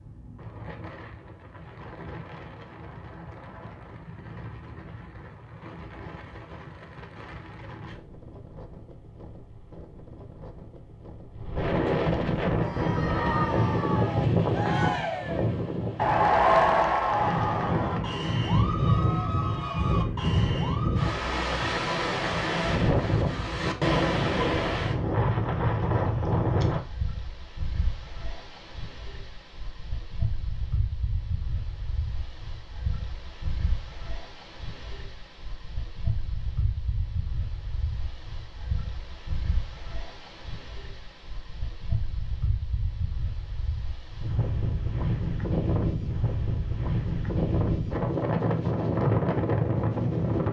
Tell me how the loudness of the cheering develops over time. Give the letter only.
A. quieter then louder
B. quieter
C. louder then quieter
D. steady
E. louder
C.